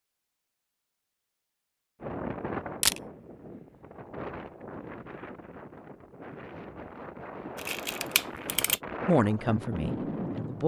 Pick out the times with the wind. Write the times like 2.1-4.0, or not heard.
2.0-10.6.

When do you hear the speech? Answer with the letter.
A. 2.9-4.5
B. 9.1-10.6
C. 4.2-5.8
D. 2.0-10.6
B.